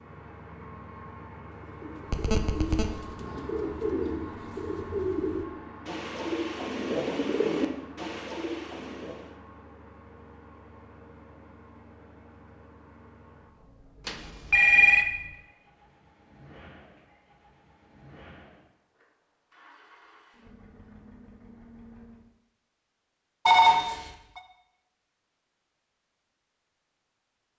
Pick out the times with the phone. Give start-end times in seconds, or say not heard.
2.1-2.9, 14.1-15.1, 23.4-24.4.